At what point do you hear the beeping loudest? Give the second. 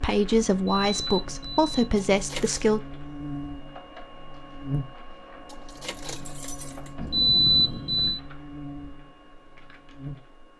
7 s.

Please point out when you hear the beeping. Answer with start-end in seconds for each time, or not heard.
0.8-1.9, 7.0-8.2.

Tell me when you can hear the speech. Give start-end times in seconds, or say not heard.
0.0-2.8.